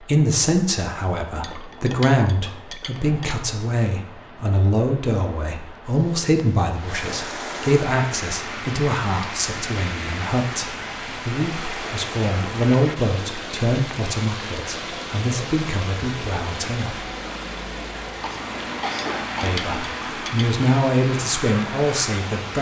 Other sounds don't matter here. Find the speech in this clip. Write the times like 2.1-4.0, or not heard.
0.1-17.1, 19.4-22.5.